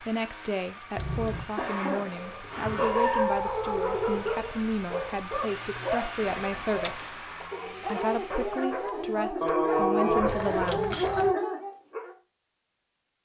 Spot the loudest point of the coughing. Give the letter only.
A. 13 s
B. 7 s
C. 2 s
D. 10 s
D.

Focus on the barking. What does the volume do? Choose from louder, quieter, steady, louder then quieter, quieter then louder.
quieter then louder.